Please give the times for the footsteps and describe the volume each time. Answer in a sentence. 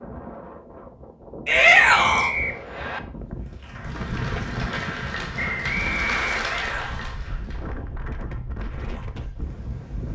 The footsteps can't be heard in this clip.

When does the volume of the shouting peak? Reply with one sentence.
The loudest moment of the shouting is at 2 seconds.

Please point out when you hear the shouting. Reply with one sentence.
You can hear the shouting from 1.4 to 2.3 s and from 6.5 to 7.2 s.